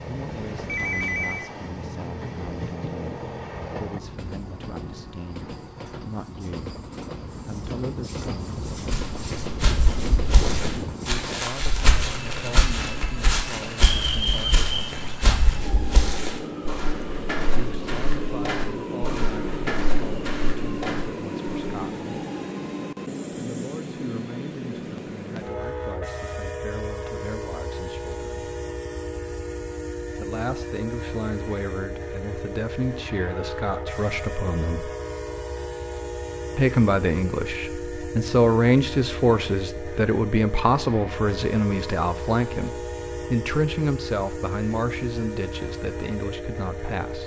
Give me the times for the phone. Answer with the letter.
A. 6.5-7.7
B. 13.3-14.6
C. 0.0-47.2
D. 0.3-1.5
D.